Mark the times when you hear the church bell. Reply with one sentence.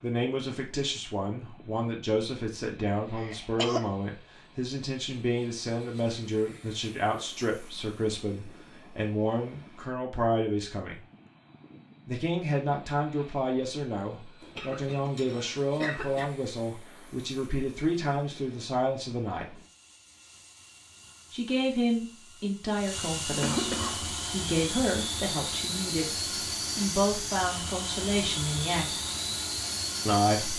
The church bell can't be heard in this clip.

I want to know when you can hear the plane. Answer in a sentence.
The plane can be heard from 0.0 to 30.5 s.